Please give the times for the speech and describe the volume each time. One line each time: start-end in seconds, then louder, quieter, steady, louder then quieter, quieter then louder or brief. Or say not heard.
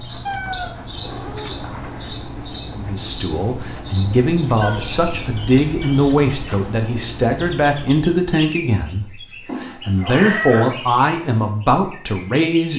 2.8-12.7 steady.